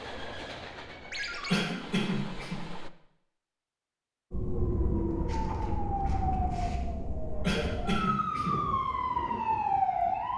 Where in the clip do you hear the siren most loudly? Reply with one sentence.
The loudest moment of the siren is at 10 seconds.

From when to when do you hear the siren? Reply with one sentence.
You can hear the siren from 4.3 to 10.3 s.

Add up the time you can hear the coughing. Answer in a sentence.
You can hear the coughing for 2 seconds altogether.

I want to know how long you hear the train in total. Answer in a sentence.
You can hear the train for 3 seconds altogether.